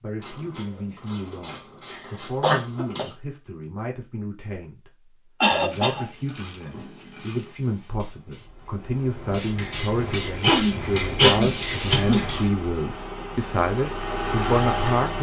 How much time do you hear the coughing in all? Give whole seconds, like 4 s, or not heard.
4 s.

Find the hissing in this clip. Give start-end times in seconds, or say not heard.
6.0-12.5.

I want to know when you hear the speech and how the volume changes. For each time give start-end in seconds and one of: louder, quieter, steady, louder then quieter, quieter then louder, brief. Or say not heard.
0.0-15.1 louder.